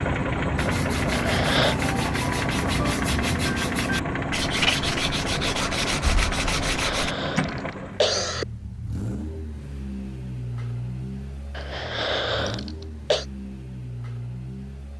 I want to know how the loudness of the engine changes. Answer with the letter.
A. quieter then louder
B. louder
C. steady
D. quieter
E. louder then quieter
D.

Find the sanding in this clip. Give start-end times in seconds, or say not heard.
0.6-7.2.